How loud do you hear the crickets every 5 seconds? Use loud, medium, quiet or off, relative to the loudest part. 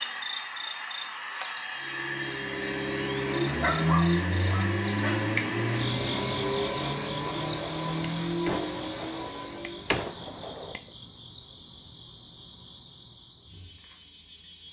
loud, loud, quiet.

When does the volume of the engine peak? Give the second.
4 s.